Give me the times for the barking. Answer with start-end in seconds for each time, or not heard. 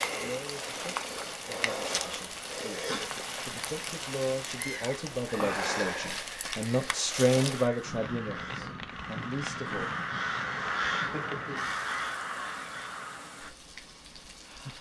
not heard.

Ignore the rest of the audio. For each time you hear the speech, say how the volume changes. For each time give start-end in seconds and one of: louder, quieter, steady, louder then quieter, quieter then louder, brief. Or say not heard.
0.0-9.9 louder then quieter.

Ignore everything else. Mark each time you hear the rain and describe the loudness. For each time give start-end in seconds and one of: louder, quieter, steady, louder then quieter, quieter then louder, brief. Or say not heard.
0.0-14.7 quieter.